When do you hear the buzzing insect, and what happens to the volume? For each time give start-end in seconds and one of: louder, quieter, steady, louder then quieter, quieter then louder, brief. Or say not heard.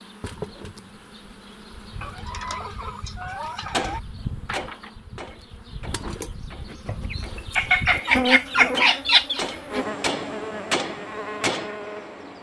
0.0-12.3 louder.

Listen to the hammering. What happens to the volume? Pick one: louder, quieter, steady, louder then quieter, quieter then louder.
quieter then louder.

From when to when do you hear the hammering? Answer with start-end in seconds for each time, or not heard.
3.7-11.7.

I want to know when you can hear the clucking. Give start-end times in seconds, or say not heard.
2.0-4.0, 6.8-9.4.